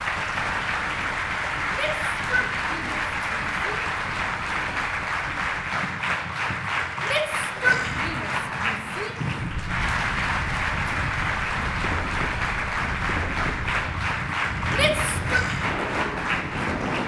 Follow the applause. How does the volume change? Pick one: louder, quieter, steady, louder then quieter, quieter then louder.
steady.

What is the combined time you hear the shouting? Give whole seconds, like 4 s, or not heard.
5 s.